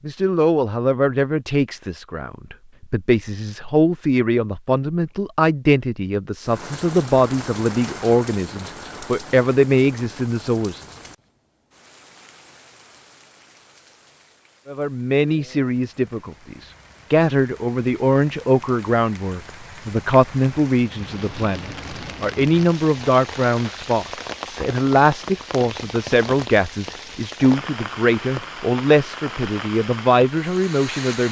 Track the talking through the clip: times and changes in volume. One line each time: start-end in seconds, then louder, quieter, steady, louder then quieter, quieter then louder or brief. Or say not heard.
0.1-10.8 steady
14.7-31.2 steady.